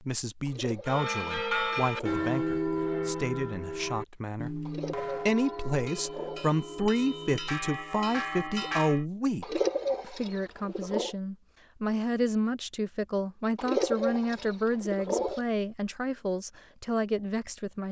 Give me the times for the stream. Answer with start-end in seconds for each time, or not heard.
not heard.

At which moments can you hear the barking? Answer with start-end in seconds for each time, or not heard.
not heard.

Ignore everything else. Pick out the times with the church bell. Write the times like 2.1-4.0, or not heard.
0.8-9.1.